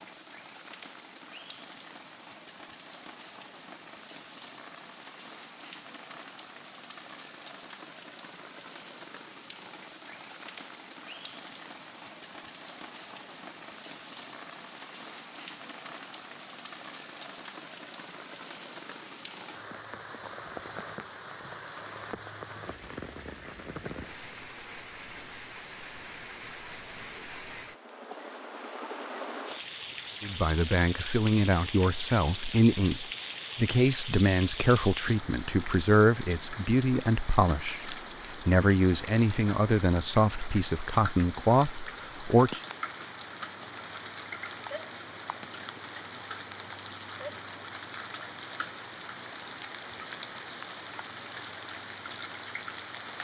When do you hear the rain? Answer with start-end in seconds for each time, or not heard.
0.0-53.1.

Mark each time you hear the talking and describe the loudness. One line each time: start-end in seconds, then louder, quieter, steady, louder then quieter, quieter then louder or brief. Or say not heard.
30.2-42.6 steady.